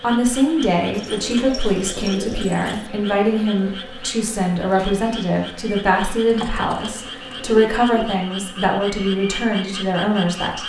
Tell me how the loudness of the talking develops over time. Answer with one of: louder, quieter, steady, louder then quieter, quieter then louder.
steady.